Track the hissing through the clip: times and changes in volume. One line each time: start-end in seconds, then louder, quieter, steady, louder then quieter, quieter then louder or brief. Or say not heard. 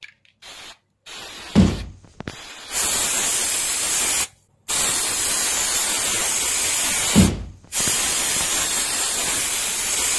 0.0-10.1 louder.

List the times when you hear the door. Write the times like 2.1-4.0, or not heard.
1.6-2.3, 7.2-8.4.